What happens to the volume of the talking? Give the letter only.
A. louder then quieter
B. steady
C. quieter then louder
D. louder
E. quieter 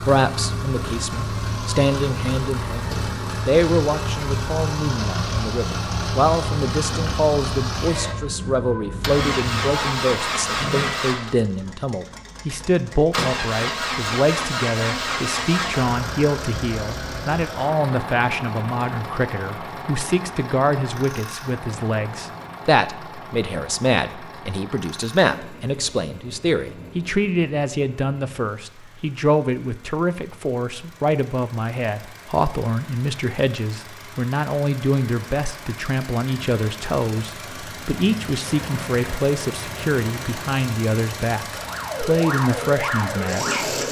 B.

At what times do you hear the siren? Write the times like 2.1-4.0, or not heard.
0.0-11.1, 41.5-43.8.